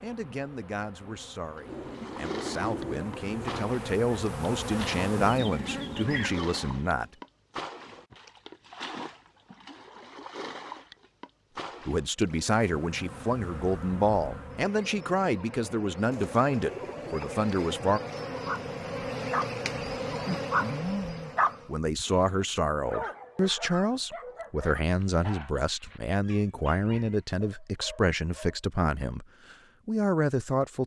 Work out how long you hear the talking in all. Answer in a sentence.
The talking can be heard for 22 seconds in total.